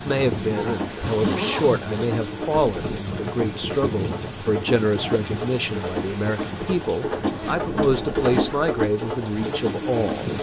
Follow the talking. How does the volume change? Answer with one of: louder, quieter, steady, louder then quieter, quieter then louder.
steady.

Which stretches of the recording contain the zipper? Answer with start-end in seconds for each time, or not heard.
1.0-1.9, 7.2-8.8.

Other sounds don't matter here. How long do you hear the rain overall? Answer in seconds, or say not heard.
10 s.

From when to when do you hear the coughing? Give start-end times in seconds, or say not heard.
not heard.